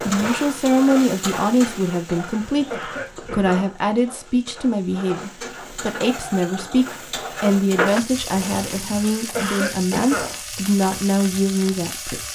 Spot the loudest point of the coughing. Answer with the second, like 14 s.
10 s.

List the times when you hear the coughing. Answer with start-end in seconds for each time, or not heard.
2.5-3.8, 8.9-10.4.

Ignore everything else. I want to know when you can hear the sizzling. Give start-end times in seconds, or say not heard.
0.0-12.2.